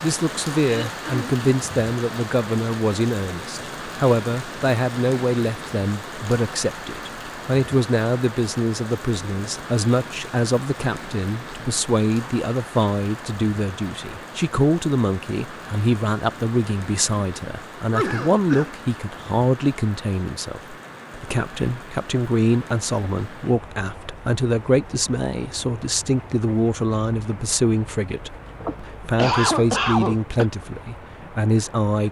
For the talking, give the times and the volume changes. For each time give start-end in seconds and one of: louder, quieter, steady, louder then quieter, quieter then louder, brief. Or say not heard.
0.0-32.0 steady.